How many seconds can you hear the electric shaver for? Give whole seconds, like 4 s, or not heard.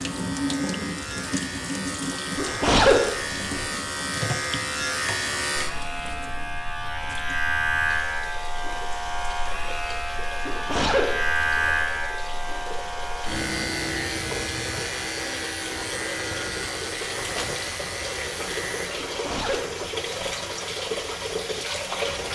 19 s.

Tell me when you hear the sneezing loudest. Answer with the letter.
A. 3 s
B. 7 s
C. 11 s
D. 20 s
A.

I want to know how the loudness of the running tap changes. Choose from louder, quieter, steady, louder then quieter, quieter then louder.
quieter then louder.